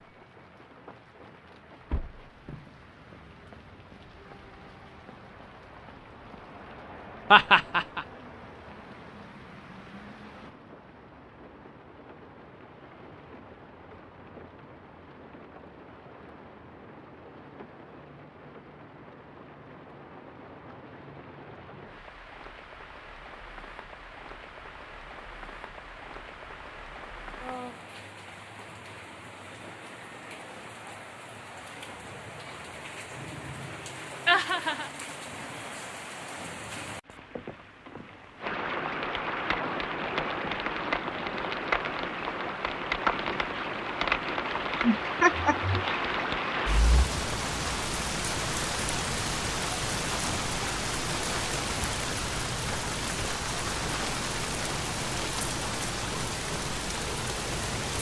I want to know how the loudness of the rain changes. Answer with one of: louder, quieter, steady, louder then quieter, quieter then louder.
louder.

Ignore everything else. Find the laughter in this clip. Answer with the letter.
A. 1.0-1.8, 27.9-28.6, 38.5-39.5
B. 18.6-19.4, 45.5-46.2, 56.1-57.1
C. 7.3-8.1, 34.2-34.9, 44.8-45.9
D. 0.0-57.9
C.